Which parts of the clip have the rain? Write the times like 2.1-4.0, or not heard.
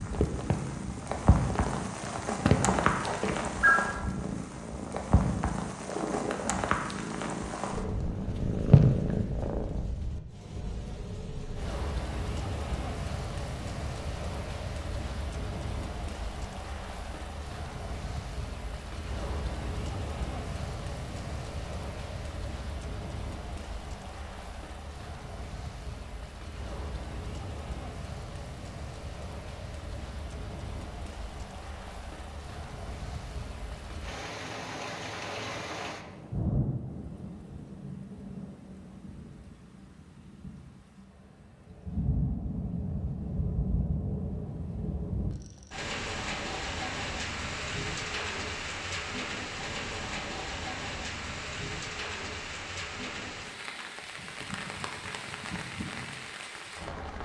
0.0-57.1.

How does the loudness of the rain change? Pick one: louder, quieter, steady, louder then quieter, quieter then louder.
quieter then louder.